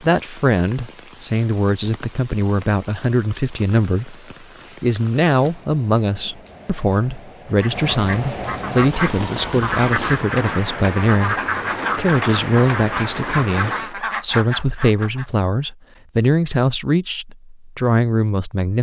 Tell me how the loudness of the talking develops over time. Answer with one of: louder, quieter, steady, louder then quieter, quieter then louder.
steady.